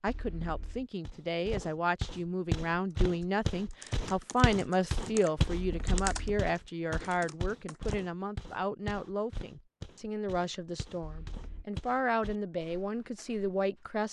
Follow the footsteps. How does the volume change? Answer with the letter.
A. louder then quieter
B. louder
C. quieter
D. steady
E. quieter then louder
C.